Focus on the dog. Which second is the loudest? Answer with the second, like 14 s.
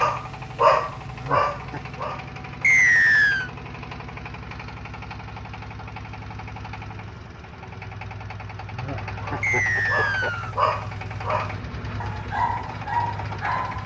1 s.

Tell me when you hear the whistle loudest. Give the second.
3 s.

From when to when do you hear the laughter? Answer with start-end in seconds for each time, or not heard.
1.1-1.8, 8.7-10.3.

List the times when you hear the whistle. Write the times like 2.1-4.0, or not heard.
2.6-3.5, 9.4-10.6.